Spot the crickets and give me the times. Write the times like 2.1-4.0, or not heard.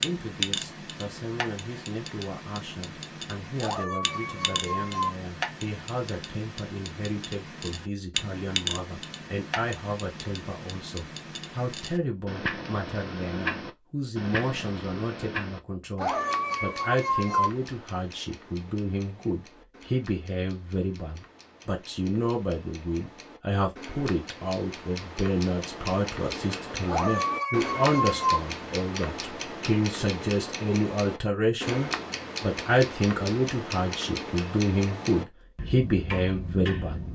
not heard.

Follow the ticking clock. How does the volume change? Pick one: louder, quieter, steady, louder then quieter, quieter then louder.
quieter then louder.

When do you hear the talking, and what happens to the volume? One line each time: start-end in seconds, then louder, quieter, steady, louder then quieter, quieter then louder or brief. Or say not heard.
0.0-37.0 louder.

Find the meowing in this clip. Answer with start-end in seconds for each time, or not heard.
3.6-5.1, 15.9-17.5, 26.9-28.4.